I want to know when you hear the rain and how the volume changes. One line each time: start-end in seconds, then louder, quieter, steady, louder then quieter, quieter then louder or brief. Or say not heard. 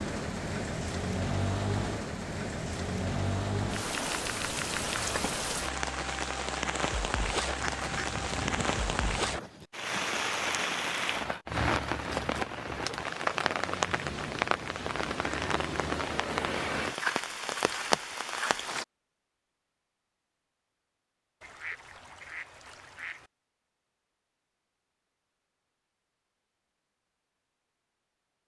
0.0-18.9 steady.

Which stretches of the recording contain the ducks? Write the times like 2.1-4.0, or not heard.
7.6-9.4, 21.4-23.3.